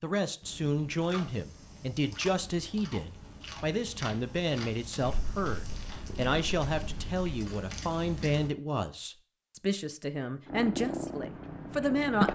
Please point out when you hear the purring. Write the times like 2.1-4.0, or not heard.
5.0-7.2, 10.4-12.3.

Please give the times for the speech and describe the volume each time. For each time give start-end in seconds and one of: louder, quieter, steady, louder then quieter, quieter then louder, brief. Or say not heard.
0.0-12.3 steady.